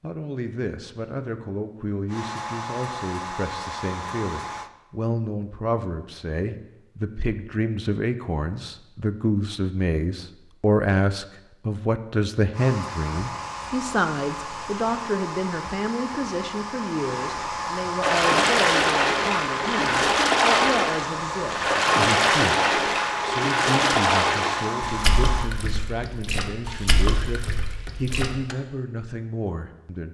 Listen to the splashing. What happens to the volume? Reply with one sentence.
The volume of the splashing goes down.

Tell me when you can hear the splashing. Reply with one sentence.
You can hear the splashing from 18.0 to 28.6 s.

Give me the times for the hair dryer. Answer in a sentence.
You can hear the hair dryer from 2.0 to 4.7 s and from 12.5 to 25.5 s.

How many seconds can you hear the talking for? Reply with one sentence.
The talking can be heard for 30 seconds in total.